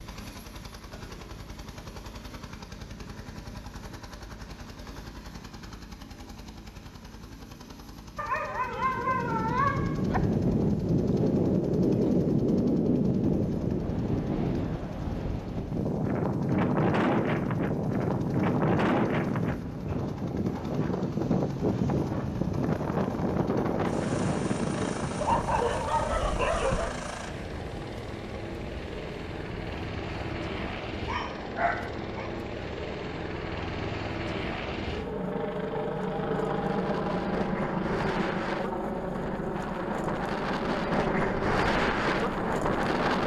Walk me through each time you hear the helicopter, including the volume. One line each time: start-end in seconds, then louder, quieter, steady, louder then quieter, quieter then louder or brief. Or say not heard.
0.0-43.2 louder.